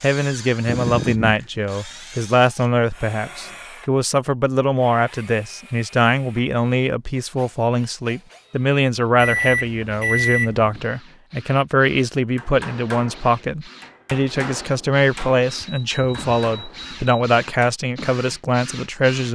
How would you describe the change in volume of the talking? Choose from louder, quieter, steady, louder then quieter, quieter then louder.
steady.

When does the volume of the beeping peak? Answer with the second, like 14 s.
10 s.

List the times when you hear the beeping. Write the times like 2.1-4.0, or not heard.
0.7-1.4, 9.2-10.8, 15.4-17.1.